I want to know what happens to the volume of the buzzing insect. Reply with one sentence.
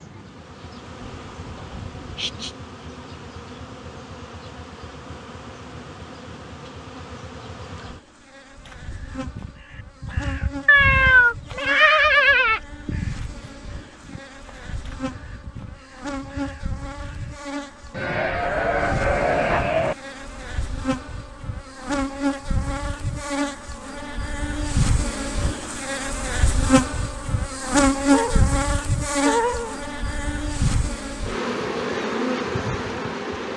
The loudness of the buzzing insect goes up.